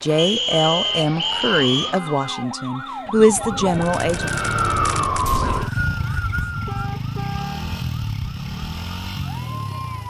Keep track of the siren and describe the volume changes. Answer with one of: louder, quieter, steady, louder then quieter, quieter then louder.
louder then quieter.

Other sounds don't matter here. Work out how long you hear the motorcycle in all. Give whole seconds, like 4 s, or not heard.
7 s.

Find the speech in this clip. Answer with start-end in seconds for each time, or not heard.
0.0-4.3.